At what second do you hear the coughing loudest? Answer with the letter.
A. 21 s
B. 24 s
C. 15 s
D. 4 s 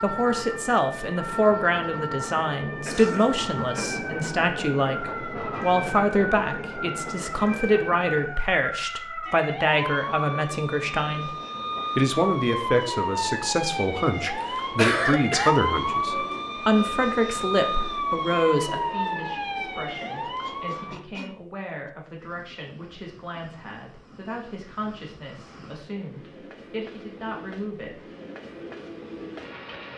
C.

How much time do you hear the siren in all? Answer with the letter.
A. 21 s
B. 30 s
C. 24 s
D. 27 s
A.